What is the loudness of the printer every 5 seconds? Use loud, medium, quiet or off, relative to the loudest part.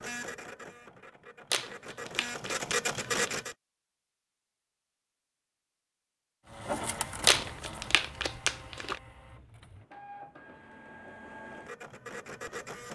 loud, medium, medium.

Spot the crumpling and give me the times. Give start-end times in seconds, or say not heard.
1.5-3.4, 7.2-9.0.